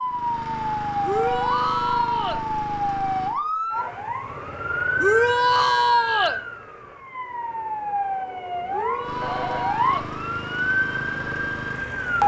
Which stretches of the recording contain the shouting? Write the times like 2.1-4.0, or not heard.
1.0-2.5, 5.0-6.4, 8.7-10.1.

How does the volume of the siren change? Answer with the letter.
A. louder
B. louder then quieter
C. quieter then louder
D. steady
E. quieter
D.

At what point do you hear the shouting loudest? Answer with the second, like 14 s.
6 s.